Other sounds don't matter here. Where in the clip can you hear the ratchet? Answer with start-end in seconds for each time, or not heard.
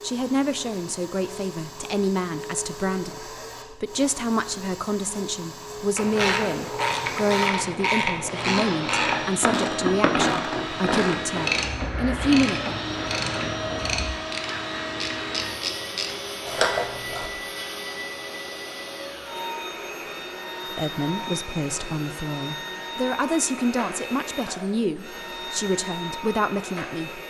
6.0-17.3.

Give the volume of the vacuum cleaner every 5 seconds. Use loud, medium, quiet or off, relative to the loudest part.
medium, loud, loud, loud, loud, loud.